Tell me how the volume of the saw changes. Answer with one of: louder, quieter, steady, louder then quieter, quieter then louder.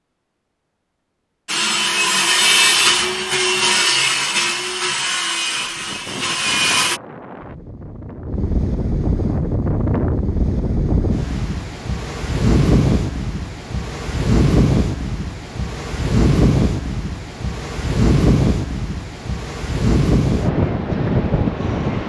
quieter.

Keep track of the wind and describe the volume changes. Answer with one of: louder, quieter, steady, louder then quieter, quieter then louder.
louder.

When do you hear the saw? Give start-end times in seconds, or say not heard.
1.4-7.0.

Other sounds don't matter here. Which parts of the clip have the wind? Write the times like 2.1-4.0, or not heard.
5.5-22.0.